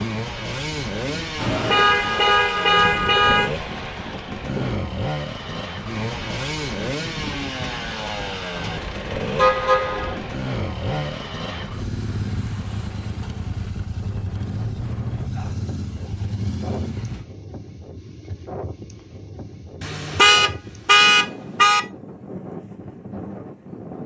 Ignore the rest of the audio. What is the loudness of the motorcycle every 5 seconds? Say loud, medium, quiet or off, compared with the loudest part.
loud, loud, loud, loud, off.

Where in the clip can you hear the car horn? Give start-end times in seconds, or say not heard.
1.4-3.5, 9.3-10.2, 19.8-21.8.